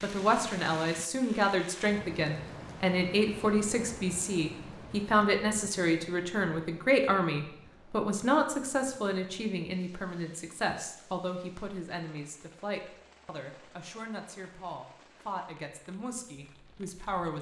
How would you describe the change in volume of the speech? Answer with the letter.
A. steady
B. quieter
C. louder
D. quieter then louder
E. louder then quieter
B.